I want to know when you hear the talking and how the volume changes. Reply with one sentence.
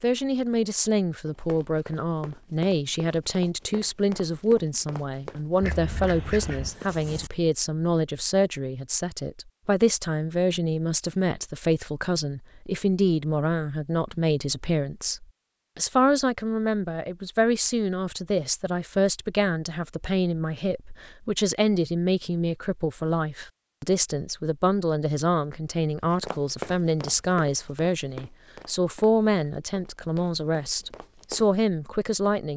You can hear the talking from 0.0 to 32.5 s, at a steady volume.